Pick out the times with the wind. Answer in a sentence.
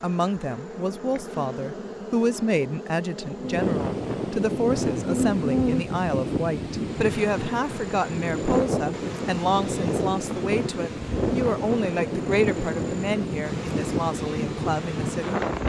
The wind can be heard from 3.4 to 15.6 s.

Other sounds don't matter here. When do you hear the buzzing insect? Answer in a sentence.
The buzzing insect can be heard from 0.0 to 15.6 s.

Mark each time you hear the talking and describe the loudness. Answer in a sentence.
The talking can be heard from 0.0 to 15.4 s, at a steady volume.